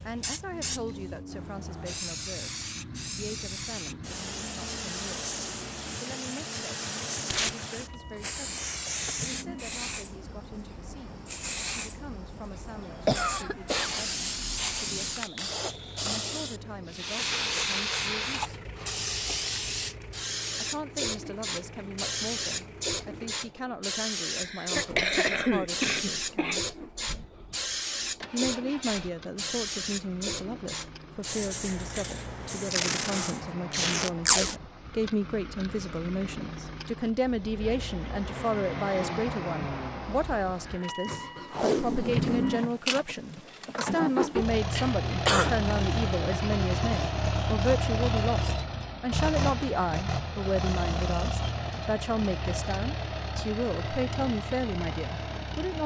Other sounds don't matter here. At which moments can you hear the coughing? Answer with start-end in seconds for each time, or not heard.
12.6-13.9, 24.3-26.6, 44.8-45.5.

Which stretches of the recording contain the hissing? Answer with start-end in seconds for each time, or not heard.
0.0-33.5.